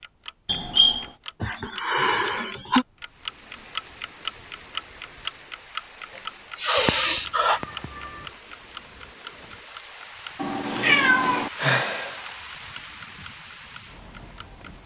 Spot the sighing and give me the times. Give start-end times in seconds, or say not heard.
1.4-2.9, 6.2-7.6, 10.7-12.2.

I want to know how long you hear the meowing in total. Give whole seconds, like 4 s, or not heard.
3 s.